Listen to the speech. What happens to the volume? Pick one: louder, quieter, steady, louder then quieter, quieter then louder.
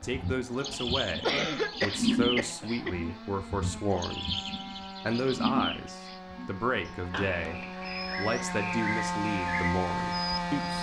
steady.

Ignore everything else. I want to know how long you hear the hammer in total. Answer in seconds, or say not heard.
not heard.